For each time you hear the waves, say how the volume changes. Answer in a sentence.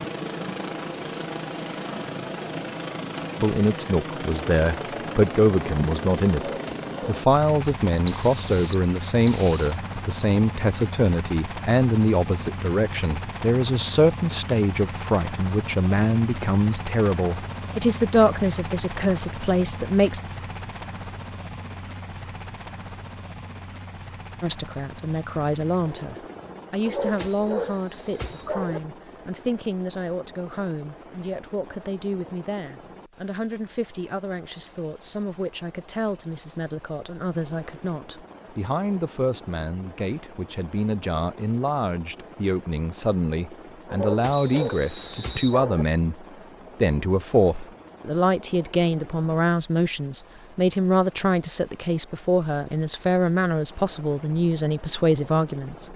You can't hear the waves here.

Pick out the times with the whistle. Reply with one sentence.
The whistle can be heard from 8.1 to 9.8 s, from 27.2 to 28.6 s and from 44.3 to 45.6 s.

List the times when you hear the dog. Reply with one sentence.
You can hear the dog from 6.3 to 7.8 s, from 26.9 to 28.8 s and from 43.9 to 45.9 s.